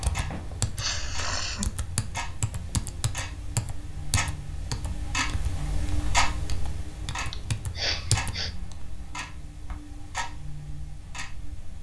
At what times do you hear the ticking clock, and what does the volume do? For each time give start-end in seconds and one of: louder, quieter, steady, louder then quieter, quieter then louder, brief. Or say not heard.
0.0-11.7 louder then quieter.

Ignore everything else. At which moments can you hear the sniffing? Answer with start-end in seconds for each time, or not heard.
0.8-1.7, 7.3-8.5.